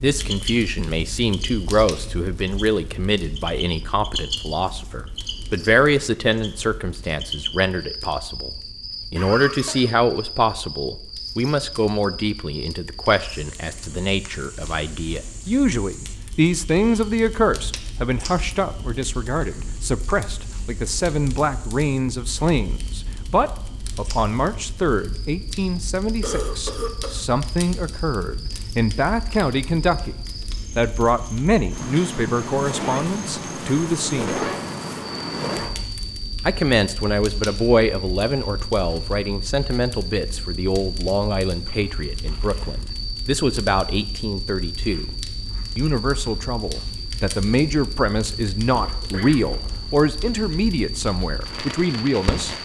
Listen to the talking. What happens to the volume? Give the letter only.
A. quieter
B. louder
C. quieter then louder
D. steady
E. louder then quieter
D.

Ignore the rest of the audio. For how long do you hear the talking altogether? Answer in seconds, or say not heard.
49 s.